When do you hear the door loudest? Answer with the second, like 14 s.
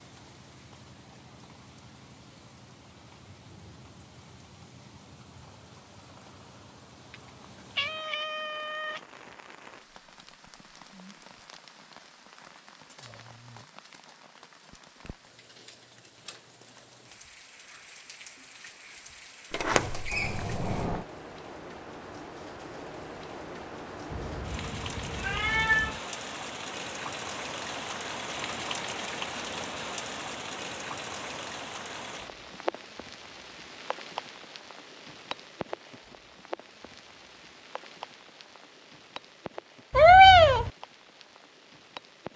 20 s.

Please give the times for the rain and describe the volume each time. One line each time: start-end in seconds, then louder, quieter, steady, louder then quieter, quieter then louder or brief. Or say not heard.
0.0-42.3 louder then quieter.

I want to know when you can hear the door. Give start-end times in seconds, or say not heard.
19.5-21.1.